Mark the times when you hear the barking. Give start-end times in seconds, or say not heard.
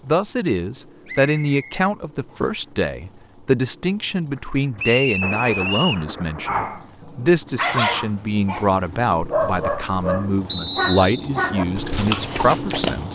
6.5-13.1.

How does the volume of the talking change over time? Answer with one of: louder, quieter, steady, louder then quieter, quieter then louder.
steady.